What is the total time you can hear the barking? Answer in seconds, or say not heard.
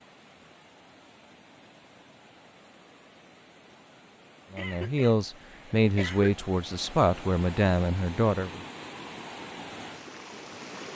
not heard.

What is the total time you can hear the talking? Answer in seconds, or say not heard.
4 s.